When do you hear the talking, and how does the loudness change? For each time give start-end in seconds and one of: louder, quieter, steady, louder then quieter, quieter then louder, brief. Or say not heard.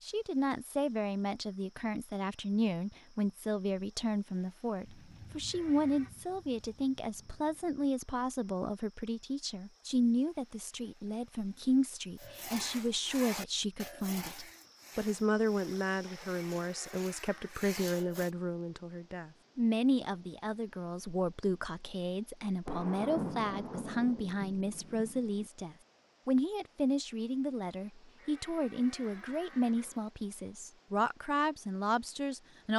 0.0-32.7 steady.